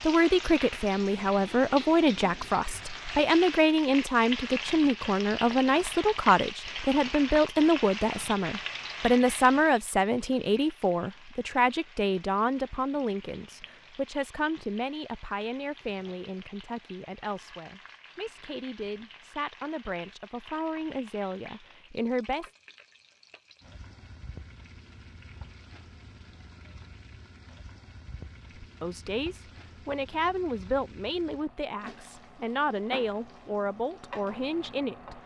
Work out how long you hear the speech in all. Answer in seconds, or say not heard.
29 s.